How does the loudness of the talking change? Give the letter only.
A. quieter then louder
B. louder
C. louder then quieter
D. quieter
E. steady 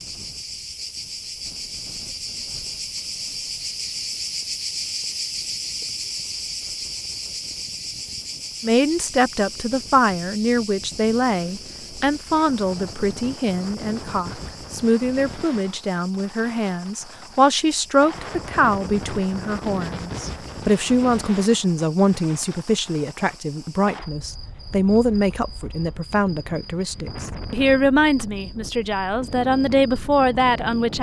E.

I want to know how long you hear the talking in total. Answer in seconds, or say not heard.
22 s.